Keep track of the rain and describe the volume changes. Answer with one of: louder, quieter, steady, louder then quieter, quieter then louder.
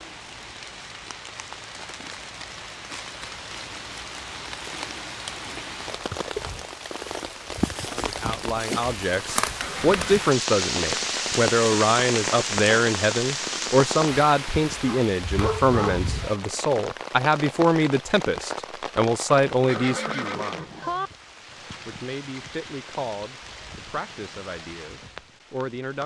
louder then quieter.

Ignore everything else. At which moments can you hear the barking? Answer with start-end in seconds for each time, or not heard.
14.8-16.4.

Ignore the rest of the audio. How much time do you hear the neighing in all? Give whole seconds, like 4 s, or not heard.
2 s.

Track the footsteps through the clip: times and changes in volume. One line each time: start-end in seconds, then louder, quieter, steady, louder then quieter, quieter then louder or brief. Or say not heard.
not heard.